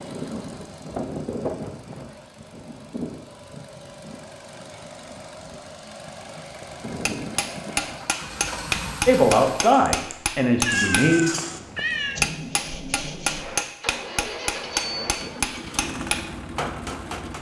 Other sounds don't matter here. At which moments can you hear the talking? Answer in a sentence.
You can hear the talking from 9.1 to 11.3 s.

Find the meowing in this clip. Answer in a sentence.
The meowing can be heard from 10.7 to 12.2 s.